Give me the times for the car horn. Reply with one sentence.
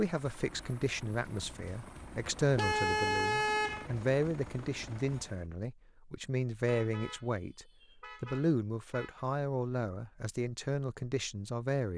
You can hear the car horn from 2.5 to 3.9 s and from 6.7 to 9.2 s.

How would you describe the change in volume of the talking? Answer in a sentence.
The volume of the talking stays about the same.